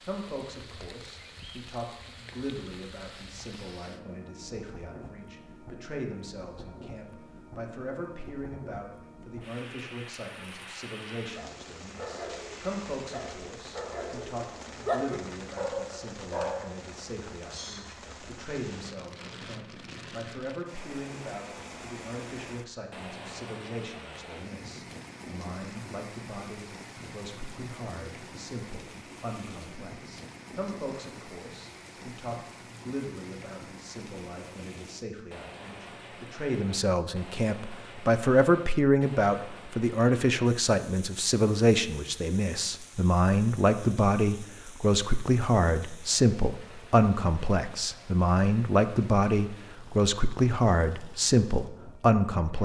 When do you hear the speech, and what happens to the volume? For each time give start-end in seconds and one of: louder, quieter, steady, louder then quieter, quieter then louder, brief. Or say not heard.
0.1-52.5 louder.